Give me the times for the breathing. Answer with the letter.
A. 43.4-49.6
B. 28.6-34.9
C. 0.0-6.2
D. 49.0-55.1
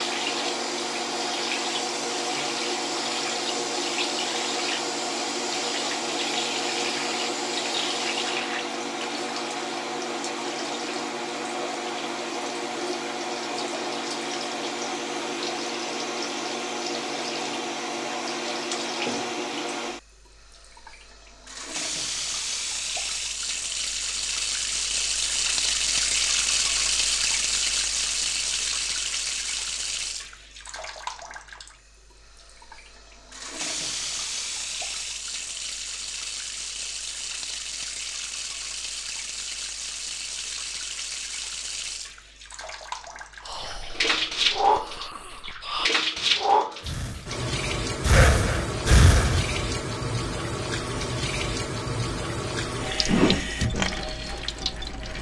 A.